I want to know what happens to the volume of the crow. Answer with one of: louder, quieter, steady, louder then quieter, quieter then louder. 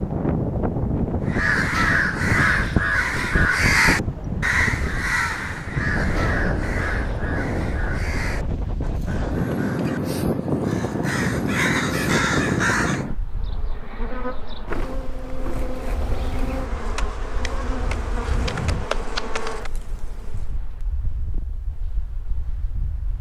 quieter then louder.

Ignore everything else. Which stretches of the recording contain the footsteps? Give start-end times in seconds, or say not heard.
not heard.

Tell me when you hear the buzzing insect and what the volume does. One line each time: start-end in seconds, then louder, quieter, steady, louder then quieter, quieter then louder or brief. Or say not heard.
13.2-20.6 steady.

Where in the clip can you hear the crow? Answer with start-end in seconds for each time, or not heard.
1.2-13.1.